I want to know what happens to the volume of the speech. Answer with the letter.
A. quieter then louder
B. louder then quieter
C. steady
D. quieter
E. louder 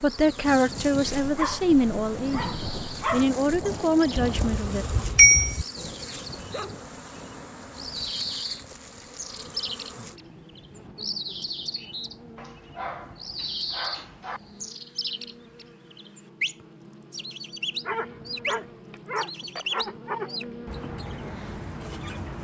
A.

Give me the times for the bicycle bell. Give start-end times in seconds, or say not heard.
4.2-5.7.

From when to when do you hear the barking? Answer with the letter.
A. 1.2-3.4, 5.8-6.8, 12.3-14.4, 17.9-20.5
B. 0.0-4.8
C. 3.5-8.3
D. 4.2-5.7
A.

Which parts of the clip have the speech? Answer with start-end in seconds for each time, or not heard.
0.0-4.8.